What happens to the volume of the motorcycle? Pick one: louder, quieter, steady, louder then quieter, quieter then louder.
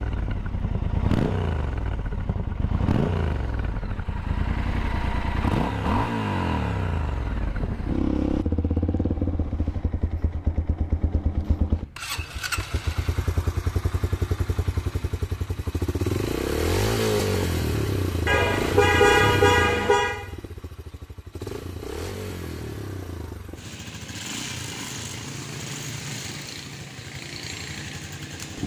quieter.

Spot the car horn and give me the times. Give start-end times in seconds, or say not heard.
18.2-20.1.